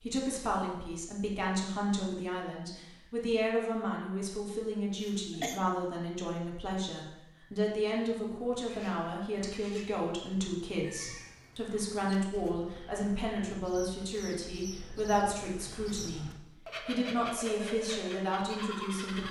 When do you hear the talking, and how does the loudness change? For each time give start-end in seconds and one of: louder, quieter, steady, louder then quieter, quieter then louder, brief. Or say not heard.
0.0-19.2 steady.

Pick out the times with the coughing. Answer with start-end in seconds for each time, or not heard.
5.0-5.6.